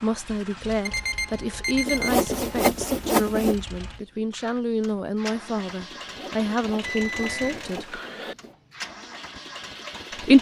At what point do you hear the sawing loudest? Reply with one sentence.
The volume of the sawing peaks at 3 seconds.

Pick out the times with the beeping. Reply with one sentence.
You can hear the beeping from 0.8 to 2.5 s and from 6.8 to 8.3 s.